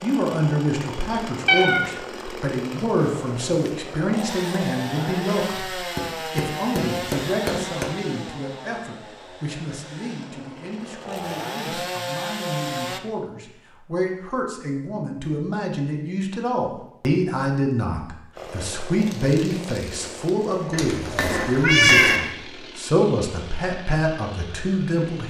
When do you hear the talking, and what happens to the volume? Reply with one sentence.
You can hear the talking from 0.0 to 25.2 s, getting quieter then louder.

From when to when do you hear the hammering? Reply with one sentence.
The hammering can be heard from 6.0 to 8.0 s and from 20.9 to 22.3 s.